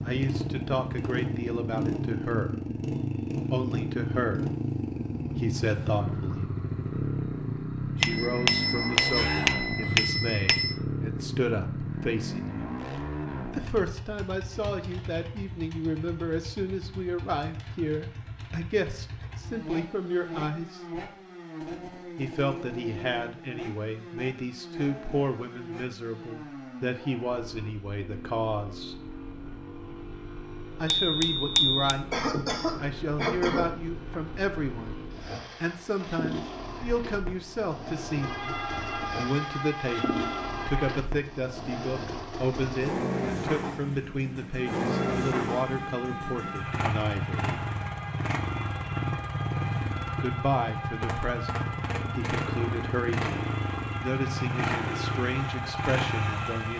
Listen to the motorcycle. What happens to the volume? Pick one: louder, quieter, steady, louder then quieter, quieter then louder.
quieter then louder.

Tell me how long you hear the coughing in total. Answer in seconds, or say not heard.
3 s.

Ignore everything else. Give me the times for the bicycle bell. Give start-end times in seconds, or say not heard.
8.0-10.8, 30.9-31.9.